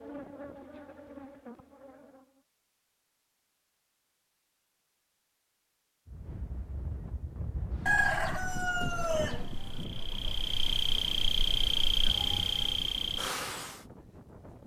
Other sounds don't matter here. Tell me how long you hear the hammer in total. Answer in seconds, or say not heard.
not heard.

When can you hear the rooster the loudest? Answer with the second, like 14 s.
8 s.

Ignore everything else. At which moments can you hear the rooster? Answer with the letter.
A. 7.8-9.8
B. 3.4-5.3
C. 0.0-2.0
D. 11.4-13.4
A.